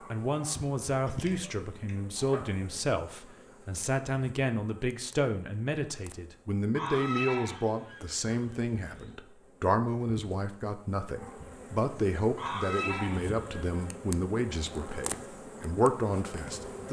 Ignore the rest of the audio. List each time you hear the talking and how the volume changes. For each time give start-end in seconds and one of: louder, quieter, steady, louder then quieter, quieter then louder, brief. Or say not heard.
0.1-16.8 steady.